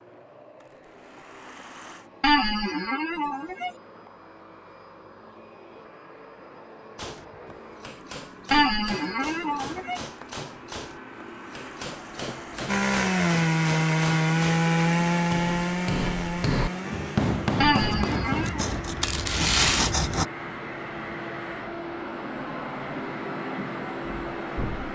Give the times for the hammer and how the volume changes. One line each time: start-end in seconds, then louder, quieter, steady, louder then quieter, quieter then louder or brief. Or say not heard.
7.0-18.9 louder.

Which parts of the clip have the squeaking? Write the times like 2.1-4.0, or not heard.
2.2-3.7, 8.5-10.0, 17.6-18.6.